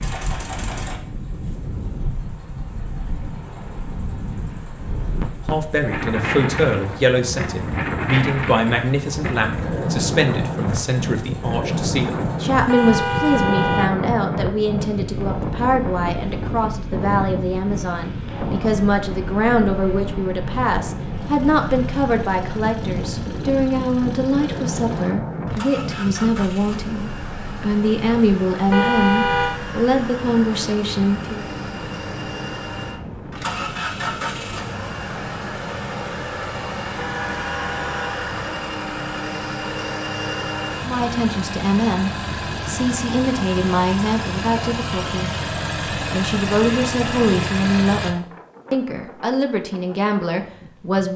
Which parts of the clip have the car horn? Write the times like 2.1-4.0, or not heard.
12.7-14.0, 28.7-29.6, 37.0-38.2.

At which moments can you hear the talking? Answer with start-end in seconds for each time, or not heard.
5.5-31.4, 40.8-45.3, 45.9-51.1.